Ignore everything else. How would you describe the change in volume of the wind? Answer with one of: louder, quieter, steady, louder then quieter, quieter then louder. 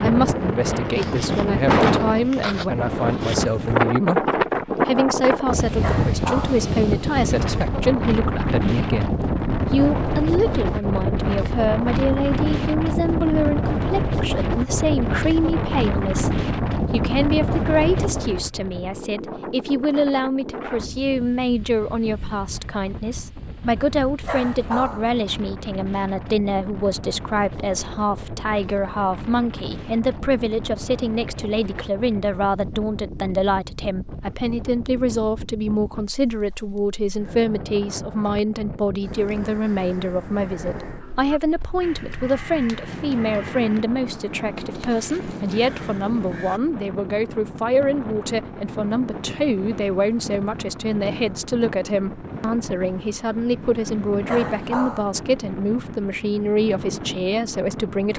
quieter.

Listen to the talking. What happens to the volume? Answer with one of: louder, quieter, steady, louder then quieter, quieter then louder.
steady.